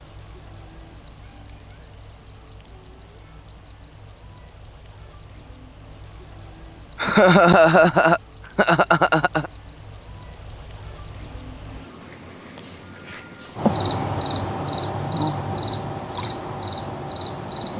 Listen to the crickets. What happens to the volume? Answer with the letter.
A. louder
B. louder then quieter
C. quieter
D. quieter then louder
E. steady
A.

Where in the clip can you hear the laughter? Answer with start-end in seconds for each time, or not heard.
7.0-9.5.